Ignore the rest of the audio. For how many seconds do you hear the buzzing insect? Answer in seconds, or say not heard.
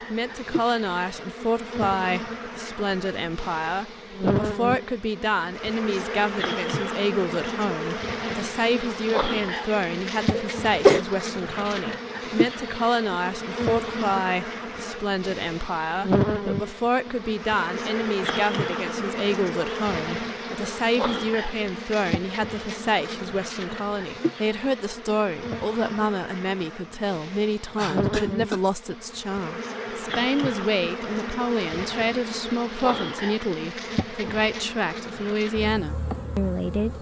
37 s.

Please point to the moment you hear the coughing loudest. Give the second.
11 s.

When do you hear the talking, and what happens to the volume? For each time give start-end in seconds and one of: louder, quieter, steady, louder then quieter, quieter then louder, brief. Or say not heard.
0.1-36.9 steady.